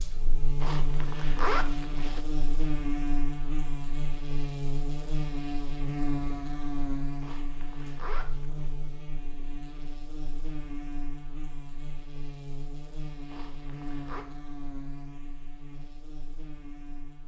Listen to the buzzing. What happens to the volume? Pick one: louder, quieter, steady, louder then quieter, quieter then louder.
quieter.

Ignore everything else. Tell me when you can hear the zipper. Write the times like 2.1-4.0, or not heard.
0.6-2.2, 7.2-8.8, 13.3-14.2.